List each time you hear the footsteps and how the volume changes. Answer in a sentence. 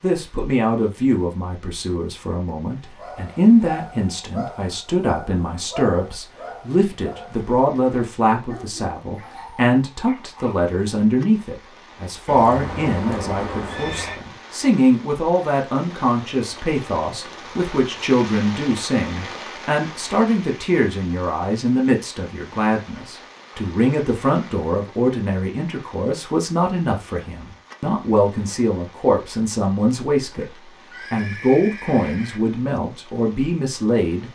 You can't hear the footsteps here.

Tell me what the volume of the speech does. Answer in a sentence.
The volume of the speech stays about the same.